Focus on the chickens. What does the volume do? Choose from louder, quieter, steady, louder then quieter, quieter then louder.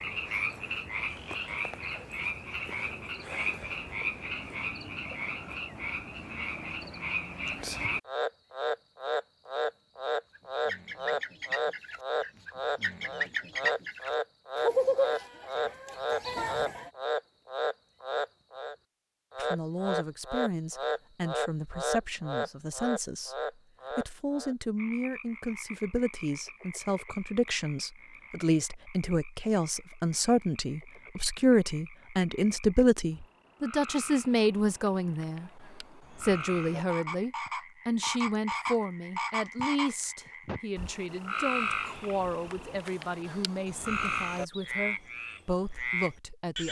louder then quieter.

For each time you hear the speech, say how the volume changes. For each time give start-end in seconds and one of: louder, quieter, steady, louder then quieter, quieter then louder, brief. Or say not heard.
19.4-46.6 louder then quieter.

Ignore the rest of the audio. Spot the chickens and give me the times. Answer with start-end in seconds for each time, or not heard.
10.3-16.9.